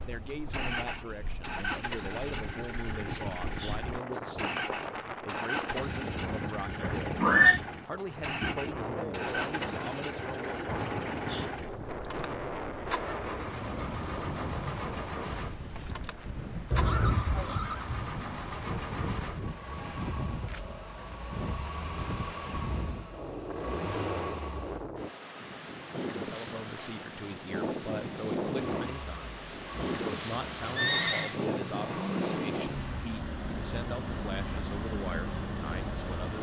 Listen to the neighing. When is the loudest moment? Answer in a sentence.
The loudest moment of the neighing is at 7 seconds.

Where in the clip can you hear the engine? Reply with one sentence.
The engine can be heard from 0.0 to 24.9 s and from 28.5 to 36.3 s.